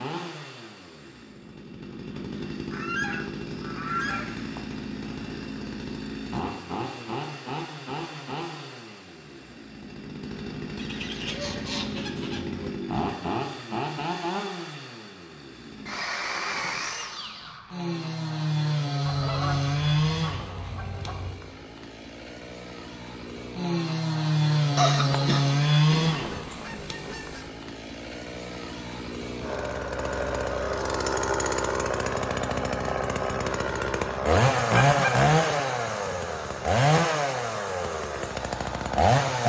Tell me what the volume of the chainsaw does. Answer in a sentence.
The loudness of the chainsaw goes up.